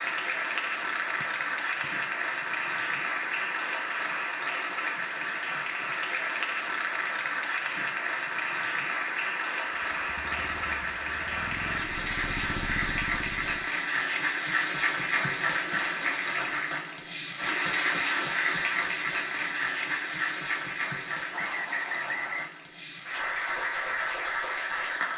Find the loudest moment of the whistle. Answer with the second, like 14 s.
22 s.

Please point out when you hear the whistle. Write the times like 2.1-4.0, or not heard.
1.2-1.9, 21.3-22.5.